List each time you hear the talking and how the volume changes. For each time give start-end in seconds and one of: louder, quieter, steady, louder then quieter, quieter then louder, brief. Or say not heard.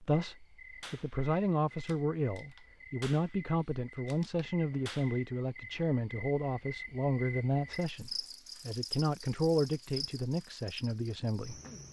0.0-11.6 steady.